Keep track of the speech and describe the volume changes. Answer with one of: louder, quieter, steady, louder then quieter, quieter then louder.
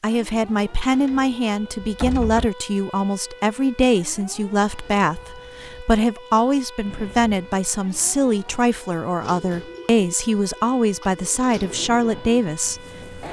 steady.